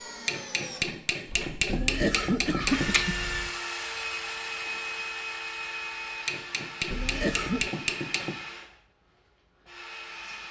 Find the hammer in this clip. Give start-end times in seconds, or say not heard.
0.2-3.0, 6.2-8.3.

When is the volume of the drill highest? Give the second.
3 s.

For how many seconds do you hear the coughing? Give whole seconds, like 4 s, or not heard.
3 s.